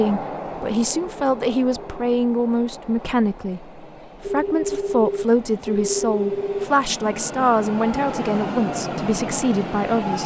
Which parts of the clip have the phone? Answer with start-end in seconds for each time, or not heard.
4.2-6.7.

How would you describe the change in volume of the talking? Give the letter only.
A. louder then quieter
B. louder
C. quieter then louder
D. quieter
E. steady
E.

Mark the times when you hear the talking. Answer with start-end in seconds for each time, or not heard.
0.0-10.2.